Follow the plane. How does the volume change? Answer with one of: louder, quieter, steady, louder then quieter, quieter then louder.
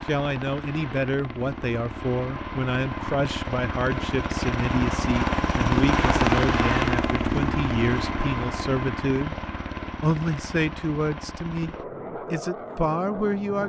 louder then quieter.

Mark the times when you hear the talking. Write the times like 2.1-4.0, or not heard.
0.1-9.3, 10.0-13.6.